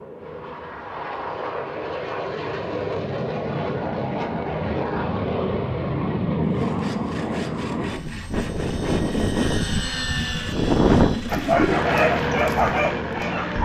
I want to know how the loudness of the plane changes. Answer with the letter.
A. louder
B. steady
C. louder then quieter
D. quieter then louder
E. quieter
A.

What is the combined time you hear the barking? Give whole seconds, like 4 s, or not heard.
2 s.